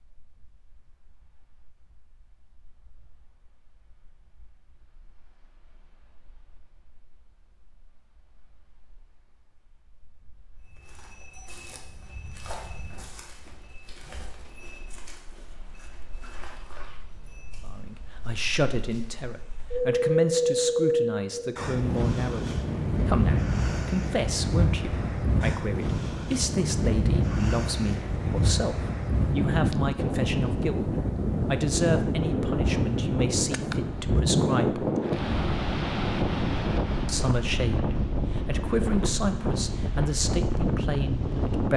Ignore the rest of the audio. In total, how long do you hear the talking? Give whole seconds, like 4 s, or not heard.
22 s.